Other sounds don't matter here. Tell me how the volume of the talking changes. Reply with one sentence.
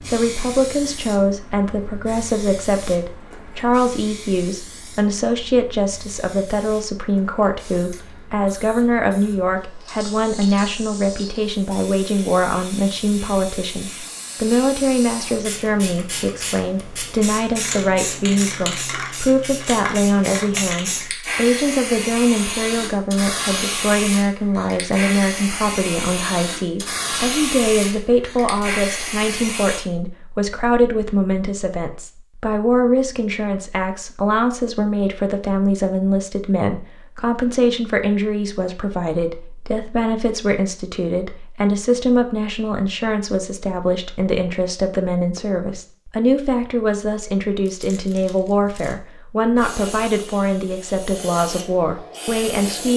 The loudness of the talking stays about the same.